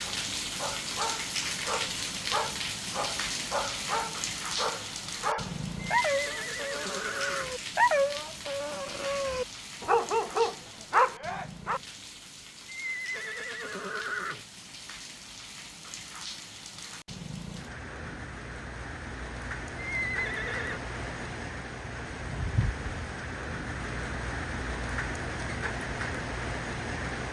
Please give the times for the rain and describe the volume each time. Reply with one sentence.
You can hear the rain from 0.0 to 27.2 s, getting quieter then louder.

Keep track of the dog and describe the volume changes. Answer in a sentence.
The loudness of the dog goes up.